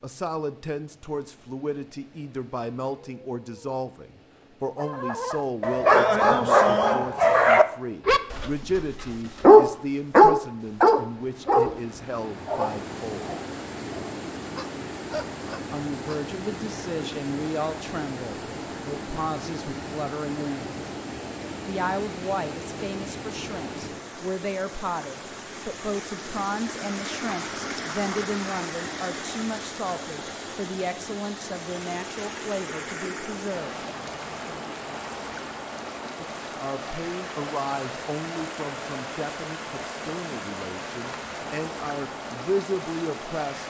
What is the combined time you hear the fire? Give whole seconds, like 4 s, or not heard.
not heard.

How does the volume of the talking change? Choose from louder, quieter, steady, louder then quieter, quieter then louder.
steady.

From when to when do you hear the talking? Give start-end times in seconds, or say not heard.
0.0-13.3, 15.7-20.8, 21.6-33.8, 36.2-43.6.